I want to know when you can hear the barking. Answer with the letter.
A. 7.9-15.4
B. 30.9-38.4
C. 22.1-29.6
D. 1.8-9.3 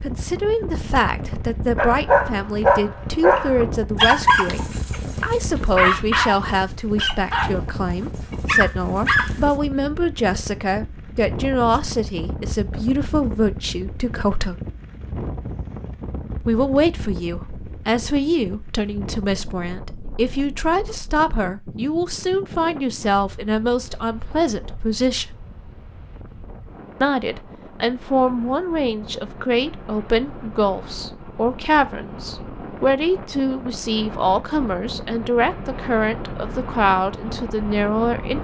D.